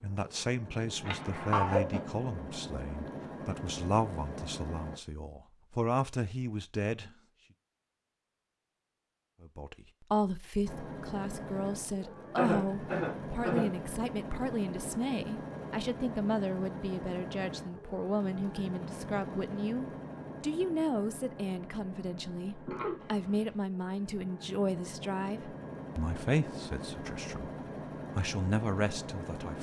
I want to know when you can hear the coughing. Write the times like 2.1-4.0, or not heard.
1.1-2.0, 12.3-13.7, 22.6-23.5.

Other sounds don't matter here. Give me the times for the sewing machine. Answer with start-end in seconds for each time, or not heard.
0.0-5.0, 10.7-29.5.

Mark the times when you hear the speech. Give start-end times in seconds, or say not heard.
0.0-7.2, 9.4-27.5, 28.1-29.5.